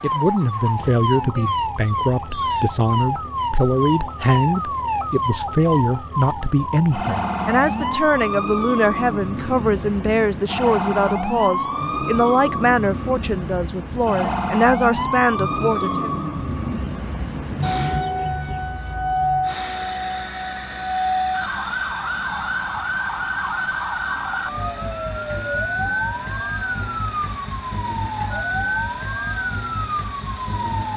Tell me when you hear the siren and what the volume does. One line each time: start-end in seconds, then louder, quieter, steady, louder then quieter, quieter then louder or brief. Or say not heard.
0.0-30.9 steady.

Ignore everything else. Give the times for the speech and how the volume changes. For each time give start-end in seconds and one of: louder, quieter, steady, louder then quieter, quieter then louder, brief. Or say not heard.
0.0-16.1 steady.